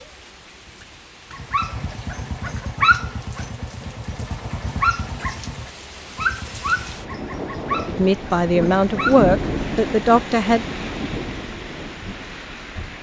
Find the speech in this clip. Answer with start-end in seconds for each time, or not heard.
7.8-10.7.